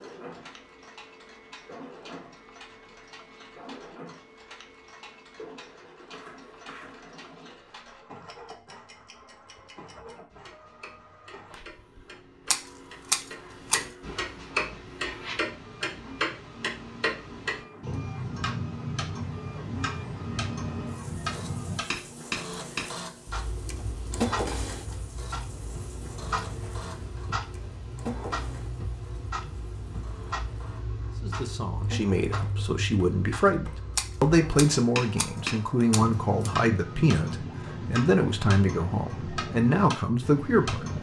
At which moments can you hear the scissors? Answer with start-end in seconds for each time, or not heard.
12.5-13.8, 34.0-35.2, 35.9-36.5.